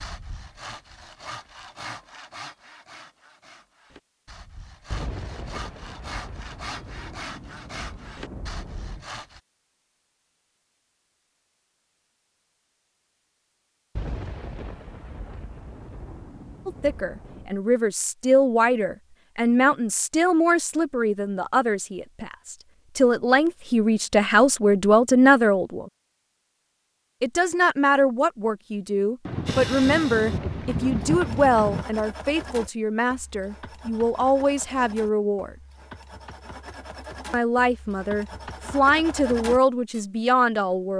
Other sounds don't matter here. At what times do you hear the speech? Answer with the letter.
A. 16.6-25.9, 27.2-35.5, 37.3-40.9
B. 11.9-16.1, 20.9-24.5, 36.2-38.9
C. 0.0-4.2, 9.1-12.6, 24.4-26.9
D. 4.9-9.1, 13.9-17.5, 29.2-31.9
A.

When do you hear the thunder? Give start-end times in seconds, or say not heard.
4.9-9.1, 13.9-17.5, 29.2-31.9.